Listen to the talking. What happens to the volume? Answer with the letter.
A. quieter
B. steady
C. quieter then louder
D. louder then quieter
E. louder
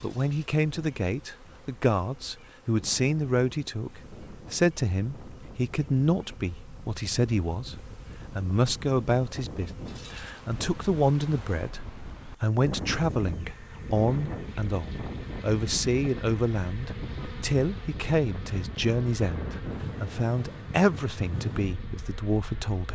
B.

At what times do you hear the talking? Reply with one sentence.
The talking can be heard from 0.0 to 11.8 s and from 12.4 to 22.8 s.